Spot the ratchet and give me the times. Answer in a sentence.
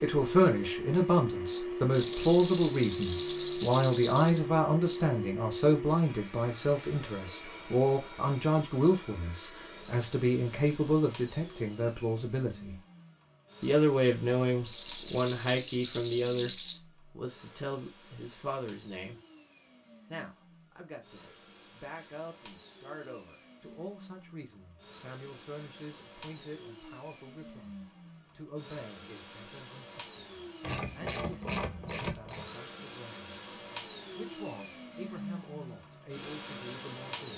The ratchet can be heard from 1.9 to 3.8 s and from 30.6 to 32.5 s.